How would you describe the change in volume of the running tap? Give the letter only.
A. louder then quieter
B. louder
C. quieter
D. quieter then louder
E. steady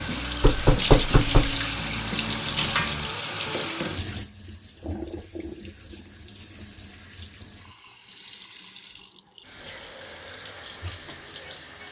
C.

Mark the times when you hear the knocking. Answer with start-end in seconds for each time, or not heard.
0.4-1.6.